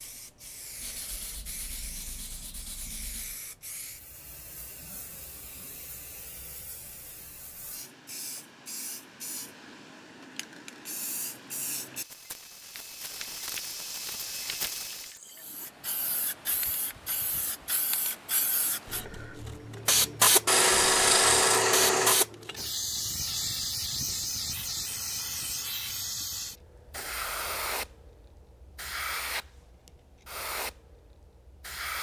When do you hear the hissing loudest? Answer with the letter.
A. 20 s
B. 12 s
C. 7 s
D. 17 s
A.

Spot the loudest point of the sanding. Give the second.
21 s.